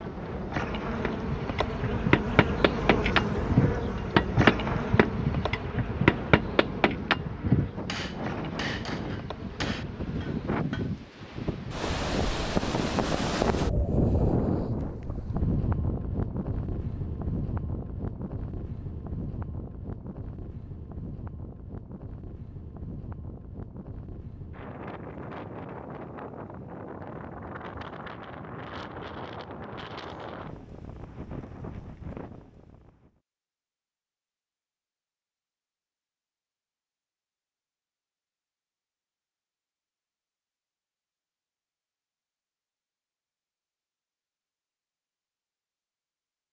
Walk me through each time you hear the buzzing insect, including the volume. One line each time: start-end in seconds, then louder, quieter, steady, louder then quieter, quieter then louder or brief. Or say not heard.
0.0-10.5 quieter.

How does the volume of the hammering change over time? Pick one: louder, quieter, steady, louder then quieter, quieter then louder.
louder then quieter.